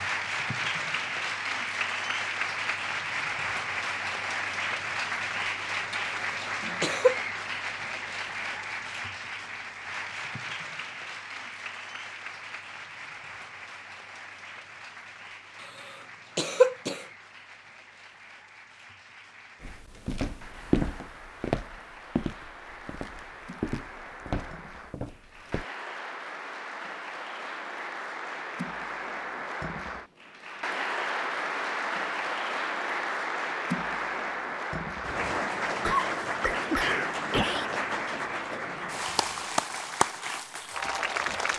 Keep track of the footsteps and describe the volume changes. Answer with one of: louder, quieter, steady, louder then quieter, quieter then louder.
quieter.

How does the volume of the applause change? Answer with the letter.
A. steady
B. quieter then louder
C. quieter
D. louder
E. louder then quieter
B.